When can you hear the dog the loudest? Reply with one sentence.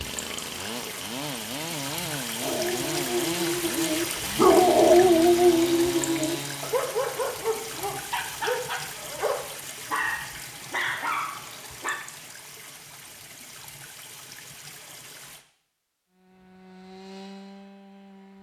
The loudest moment of the dog is at 5 seconds.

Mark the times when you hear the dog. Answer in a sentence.
The dog can be heard from 2.4 to 11.9 s.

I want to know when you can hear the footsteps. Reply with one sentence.
You can't hear the footsteps here.